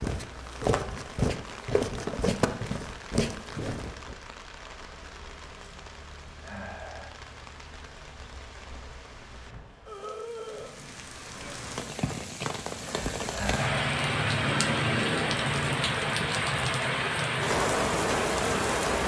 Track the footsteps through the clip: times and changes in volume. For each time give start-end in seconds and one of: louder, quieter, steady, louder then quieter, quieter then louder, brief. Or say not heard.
0.0-4.2 steady.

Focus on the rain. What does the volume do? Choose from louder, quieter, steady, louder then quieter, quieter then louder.
louder.